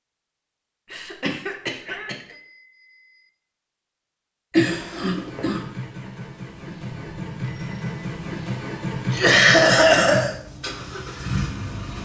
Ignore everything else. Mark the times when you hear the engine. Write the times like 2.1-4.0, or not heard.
4.6-12.0.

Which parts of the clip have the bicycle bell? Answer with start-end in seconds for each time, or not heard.
2.1-3.3, 6.5-8.5.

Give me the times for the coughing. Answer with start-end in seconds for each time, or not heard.
0.9-2.1, 4.5-5.7, 9.1-10.3.